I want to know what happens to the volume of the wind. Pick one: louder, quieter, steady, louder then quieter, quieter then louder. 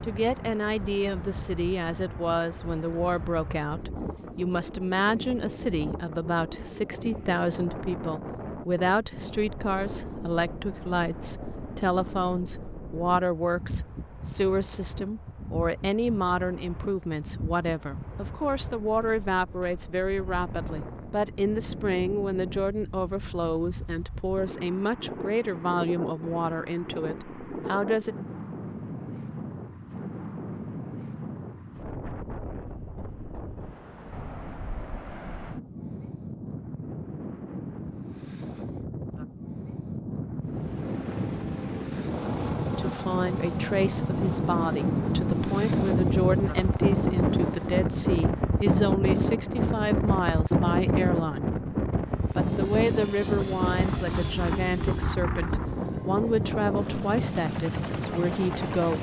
louder.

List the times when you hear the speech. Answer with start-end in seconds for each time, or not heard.
0.0-28.1, 42.8-51.6, 52.4-58.9.